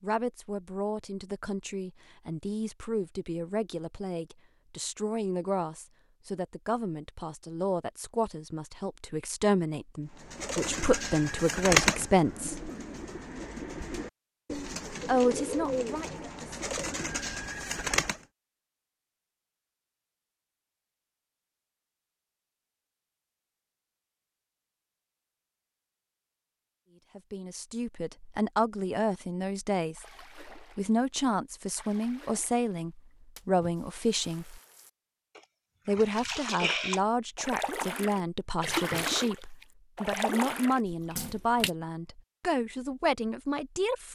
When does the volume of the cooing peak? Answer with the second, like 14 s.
12 s.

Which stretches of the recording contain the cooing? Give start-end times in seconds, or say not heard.
10.2-18.2.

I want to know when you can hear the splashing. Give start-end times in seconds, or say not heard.
29.9-31.1, 31.6-41.7.